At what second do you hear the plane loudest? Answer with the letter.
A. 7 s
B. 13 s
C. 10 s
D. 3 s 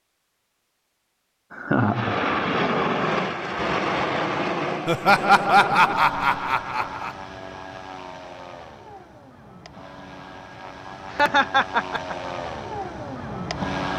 D.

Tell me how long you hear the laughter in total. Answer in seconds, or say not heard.
4 s.